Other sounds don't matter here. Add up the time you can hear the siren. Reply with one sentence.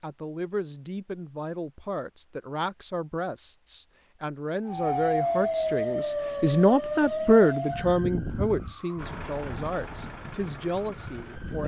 You can hear the siren for 7 seconds altogether.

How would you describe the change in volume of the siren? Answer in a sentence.
The loudness of the siren goes down.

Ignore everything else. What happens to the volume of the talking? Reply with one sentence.
The volume of the talking goes up, then down.